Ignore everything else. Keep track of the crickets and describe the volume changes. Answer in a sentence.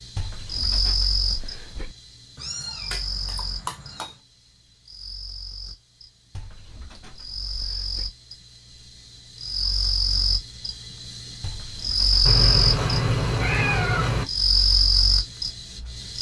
The volume of the crickets goes down, then up.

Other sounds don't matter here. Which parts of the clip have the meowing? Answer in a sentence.
The meowing can be heard from 2.4 to 4.2 s and from 12.2 to 14.2 s.